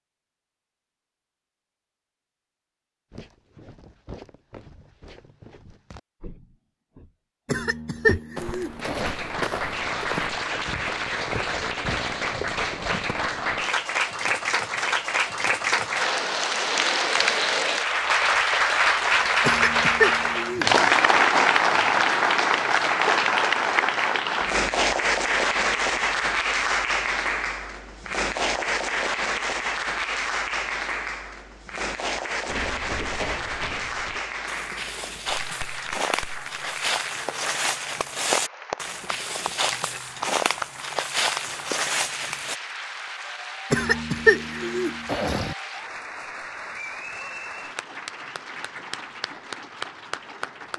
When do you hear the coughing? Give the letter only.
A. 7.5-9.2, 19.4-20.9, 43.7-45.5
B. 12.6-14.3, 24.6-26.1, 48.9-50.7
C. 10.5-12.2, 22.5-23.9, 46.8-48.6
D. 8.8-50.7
A.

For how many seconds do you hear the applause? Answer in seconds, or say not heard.
42 s.